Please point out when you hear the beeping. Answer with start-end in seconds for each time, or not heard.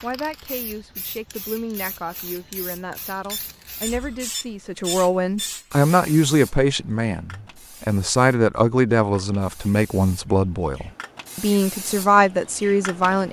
3.2-5.5.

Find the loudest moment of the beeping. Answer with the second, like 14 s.
5 s.